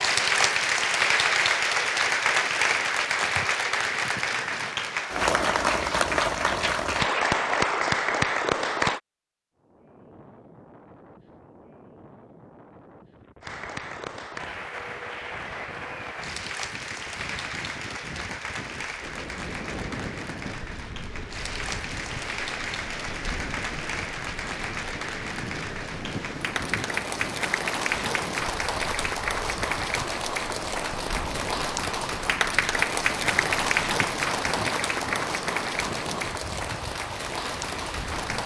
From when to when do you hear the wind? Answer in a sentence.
You can hear the wind from 9.6 to 38.4 s.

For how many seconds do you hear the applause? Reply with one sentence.
You can hear the applause for 34 seconds altogether.